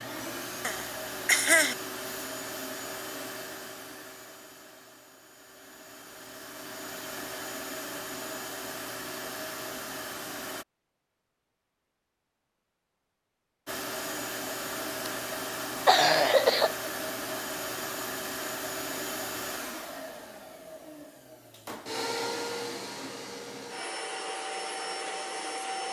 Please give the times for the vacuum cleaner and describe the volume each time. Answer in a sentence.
You can hear the vacuum cleaner from 0.0 to 10.7 s, getting quieter then louder; and from 13.7 to 25.8 s, at a steady volume.